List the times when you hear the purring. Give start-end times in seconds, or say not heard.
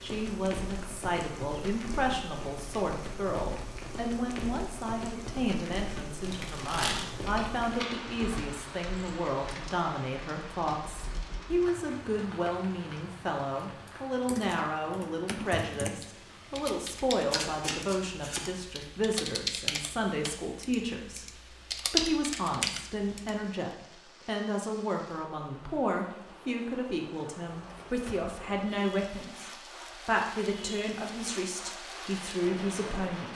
not heard.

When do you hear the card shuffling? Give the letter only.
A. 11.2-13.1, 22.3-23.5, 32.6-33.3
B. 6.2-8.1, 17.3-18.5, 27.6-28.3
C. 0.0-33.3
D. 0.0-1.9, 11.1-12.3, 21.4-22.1
B.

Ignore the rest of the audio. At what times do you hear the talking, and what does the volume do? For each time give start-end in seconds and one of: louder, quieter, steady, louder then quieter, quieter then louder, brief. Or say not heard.
0.0-33.3 steady.